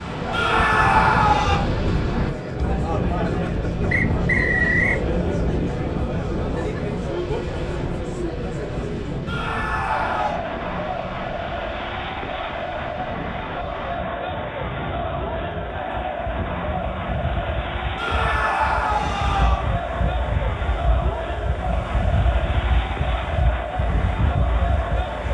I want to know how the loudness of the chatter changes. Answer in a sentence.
The volume of the chatter stays about the same.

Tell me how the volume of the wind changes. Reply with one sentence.
The loudness of the wind goes down, then up.